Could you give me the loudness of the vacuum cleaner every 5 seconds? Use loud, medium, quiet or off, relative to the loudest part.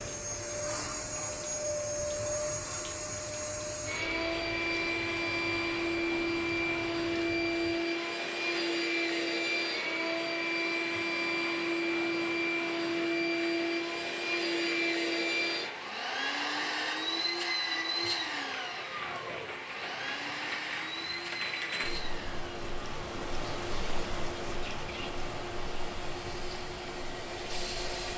loud, loud, loud, loud, medium, medium.